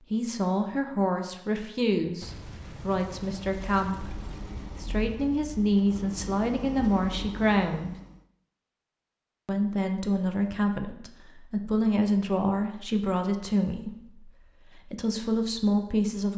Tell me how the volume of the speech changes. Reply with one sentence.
The volume of the speech stays about the same.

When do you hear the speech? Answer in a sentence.
You can hear the speech from 0.1 to 8.0 s and from 9.4 to 16.3 s.